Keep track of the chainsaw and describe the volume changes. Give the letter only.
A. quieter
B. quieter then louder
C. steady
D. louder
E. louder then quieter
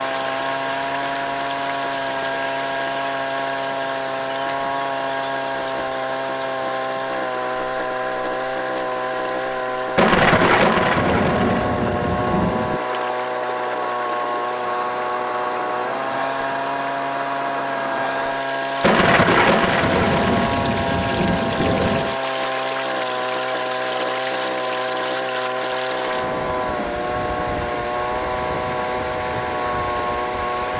C.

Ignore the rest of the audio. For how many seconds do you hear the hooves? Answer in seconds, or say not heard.
not heard.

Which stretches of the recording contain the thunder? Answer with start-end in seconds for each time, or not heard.
9.9-12.8, 18.8-22.1.